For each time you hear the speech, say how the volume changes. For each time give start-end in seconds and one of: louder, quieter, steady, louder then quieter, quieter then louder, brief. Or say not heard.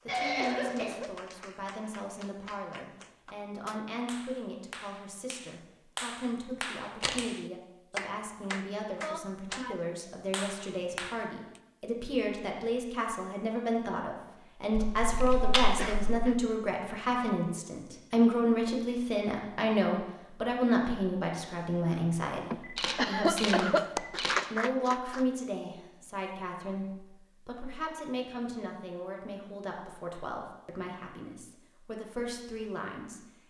0.1-33.2 louder then quieter.